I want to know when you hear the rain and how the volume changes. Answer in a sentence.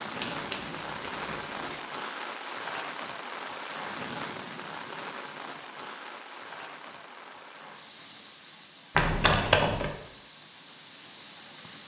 You can hear the rain from 0.0 to 11.8 s, getting quieter.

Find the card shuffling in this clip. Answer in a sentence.
The card shuffling can be heard from 0.2 to 1.8 s and from 8.9 to 9.9 s.